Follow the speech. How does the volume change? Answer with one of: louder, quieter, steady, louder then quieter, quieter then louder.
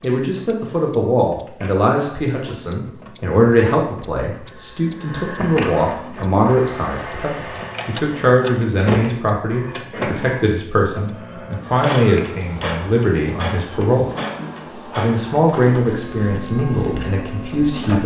steady.